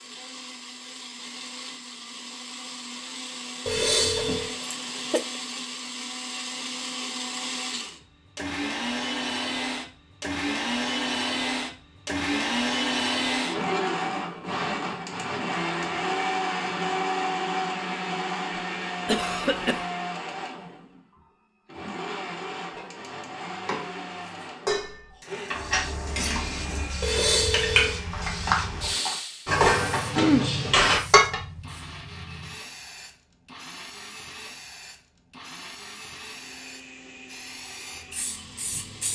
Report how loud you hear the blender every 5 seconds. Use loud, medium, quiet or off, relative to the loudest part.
medium, medium, loud, loud, medium, quiet, quiet, quiet.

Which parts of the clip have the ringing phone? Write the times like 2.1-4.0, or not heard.
3.6-4.5, 27.0-28.0.